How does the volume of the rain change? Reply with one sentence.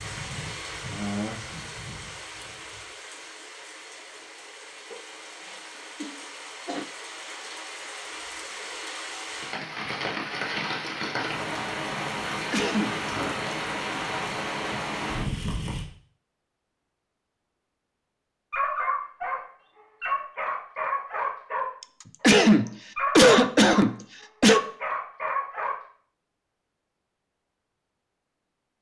The loudness of the rain goes down, then up.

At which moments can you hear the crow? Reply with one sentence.
The crow can't be heard in this clip.